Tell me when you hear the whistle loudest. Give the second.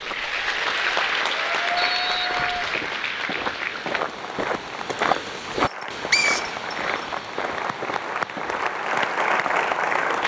6 s.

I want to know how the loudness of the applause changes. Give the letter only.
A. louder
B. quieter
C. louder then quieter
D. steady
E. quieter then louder
E.